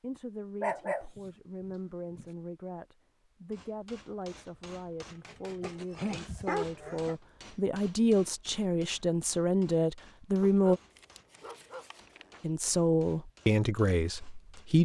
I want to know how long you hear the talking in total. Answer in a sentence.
The talking can be heard for 13 seconds in total.